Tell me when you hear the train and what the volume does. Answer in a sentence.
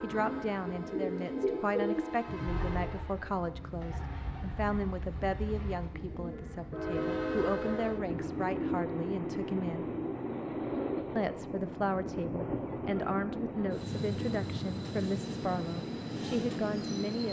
You can hear the train from 0.0 to 17.2 s, getting louder.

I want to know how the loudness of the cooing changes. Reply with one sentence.
The loudness of the cooing goes down.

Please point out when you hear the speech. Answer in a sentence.
The speech can be heard from 0.0 to 9.9 s and from 11.2 to 17.2 s.